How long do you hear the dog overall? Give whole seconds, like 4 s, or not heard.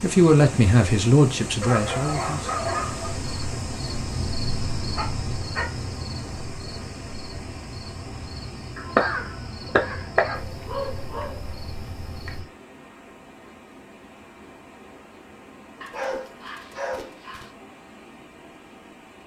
6 s.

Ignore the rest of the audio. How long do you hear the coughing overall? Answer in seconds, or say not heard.
2 s.